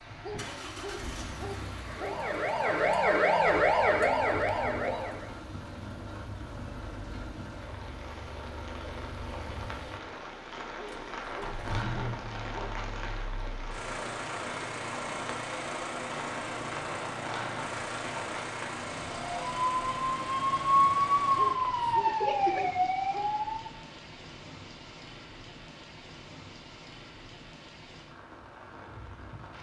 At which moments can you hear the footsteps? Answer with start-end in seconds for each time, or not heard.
not heard.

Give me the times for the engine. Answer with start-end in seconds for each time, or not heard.
0.1-22.0.